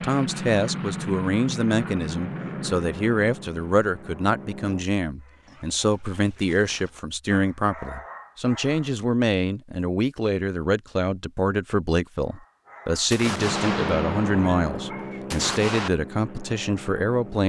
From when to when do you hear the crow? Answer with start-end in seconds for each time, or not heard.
not heard.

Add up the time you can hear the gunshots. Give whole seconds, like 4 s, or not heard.
3 s.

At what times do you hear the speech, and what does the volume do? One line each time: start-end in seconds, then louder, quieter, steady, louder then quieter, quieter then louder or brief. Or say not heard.
0.0-17.4 steady.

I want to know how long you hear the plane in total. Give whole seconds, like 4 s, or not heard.
9 s.